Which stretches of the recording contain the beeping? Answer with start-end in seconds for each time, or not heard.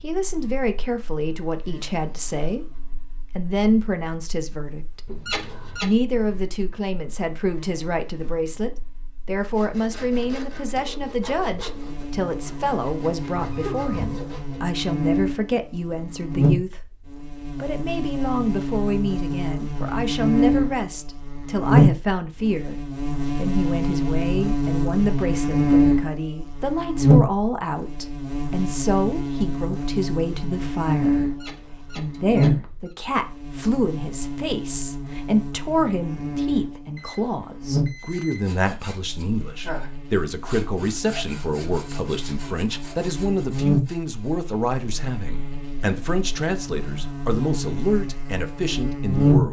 13.3-14.2, 37.0-38.5.